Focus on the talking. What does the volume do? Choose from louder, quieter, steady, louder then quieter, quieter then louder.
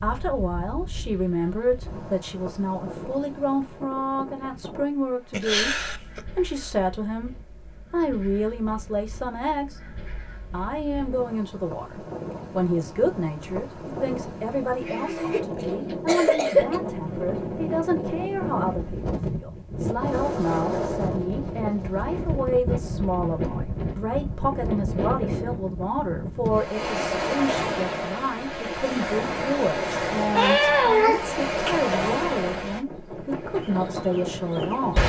steady.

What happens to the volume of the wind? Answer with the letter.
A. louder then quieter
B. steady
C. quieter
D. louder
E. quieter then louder
D.